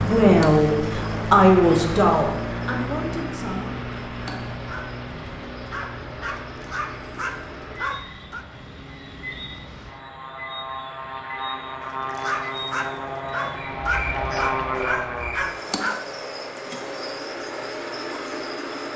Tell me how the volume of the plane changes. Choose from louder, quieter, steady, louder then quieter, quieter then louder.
quieter then louder.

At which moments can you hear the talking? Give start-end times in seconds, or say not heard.
0.0-3.8.